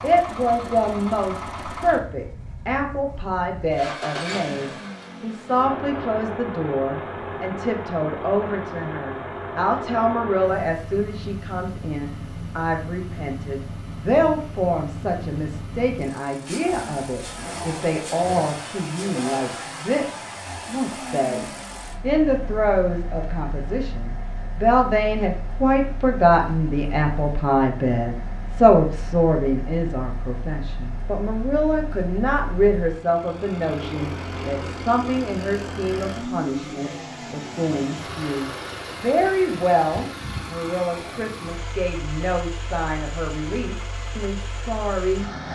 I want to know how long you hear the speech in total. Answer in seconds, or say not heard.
45 s.